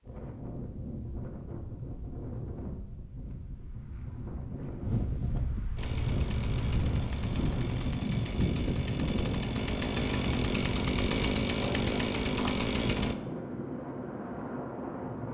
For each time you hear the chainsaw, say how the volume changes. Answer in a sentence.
The chainsaw can be heard from 5.8 to 13.2 s, getting louder.